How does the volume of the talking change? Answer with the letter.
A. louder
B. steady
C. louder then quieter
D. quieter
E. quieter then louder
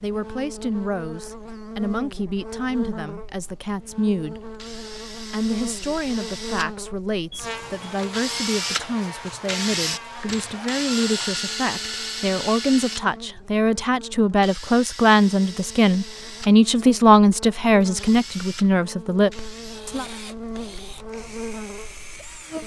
A.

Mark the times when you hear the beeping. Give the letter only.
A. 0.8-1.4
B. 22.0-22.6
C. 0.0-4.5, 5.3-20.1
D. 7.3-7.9
D.